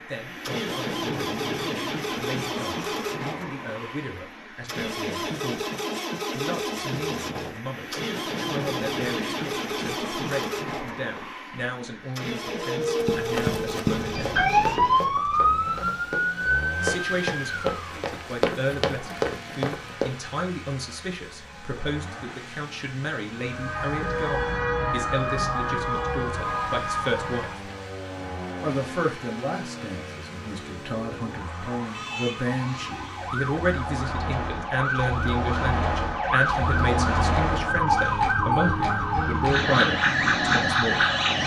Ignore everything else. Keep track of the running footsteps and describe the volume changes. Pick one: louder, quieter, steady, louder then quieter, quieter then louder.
quieter then louder.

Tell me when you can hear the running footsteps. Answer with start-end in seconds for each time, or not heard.
12.9-20.1.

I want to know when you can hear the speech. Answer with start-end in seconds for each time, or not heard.
0.1-5.7, 6.3-14.3, 16.8-27.5, 28.6-41.0.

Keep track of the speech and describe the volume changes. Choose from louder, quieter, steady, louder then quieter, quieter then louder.
louder.